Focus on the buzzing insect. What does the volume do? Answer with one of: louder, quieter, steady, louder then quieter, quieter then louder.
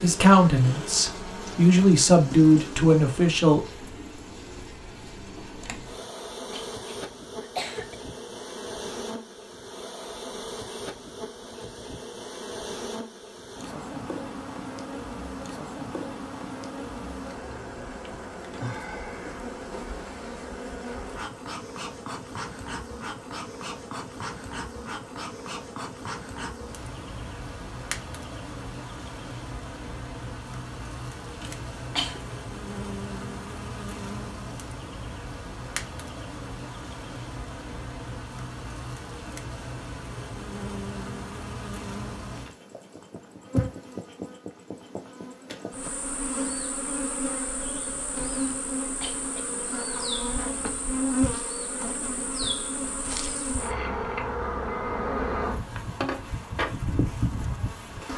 louder.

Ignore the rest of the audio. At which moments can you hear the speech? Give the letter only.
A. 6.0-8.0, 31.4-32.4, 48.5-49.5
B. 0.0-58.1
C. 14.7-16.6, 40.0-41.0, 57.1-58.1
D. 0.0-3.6
D.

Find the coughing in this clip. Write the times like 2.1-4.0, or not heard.
6.0-8.0, 31.4-32.4, 48.5-49.5.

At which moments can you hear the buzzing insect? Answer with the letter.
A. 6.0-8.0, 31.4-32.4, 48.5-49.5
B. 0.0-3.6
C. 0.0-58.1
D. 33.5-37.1
C.